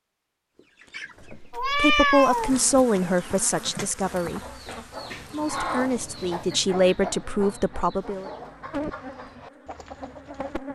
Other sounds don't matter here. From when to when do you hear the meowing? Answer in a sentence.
The meowing can be heard from 1.5 to 2.5 s.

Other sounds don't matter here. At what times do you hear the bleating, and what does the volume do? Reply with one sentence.
You can't hear the bleating here.